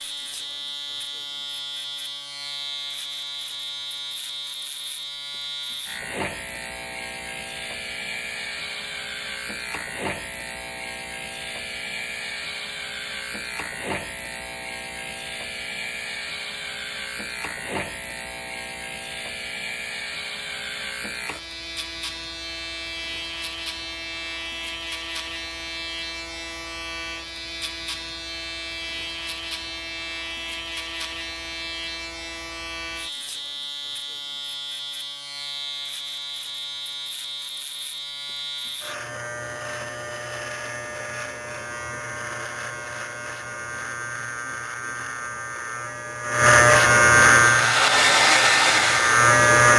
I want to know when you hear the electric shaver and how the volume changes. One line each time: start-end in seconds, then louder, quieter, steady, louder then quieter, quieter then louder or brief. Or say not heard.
0.0-49.7 louder.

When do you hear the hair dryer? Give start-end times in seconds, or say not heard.
47.4-49.7.